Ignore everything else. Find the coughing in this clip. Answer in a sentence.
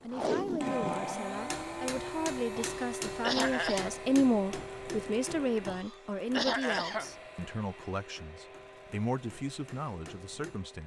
You can hear the coughing from 2.5 to 3.9 s and from 5.7 to 7.0 s.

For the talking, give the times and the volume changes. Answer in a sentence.
The talking can be heard from 0.0 to 10.8 s, getting louder then quieter.